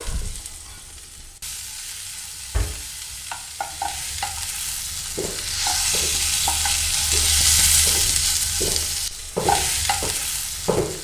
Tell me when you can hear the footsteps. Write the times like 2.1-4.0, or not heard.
5.0-6.3, 7.0-11.0.